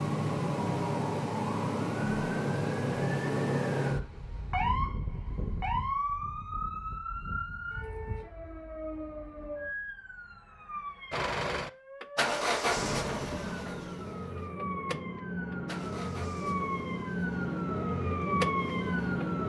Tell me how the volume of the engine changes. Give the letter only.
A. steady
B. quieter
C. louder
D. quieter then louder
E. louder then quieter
D.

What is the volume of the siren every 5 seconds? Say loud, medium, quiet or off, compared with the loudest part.
loud, medium, medium, loud.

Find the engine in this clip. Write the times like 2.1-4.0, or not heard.
11.1-19.2.